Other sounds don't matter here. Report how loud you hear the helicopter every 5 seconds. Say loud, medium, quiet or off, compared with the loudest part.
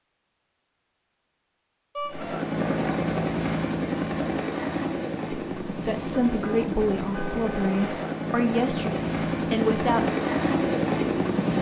loud, medium, loud.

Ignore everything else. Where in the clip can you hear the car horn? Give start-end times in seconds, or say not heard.
1.9-2.4, 6.1-7.9.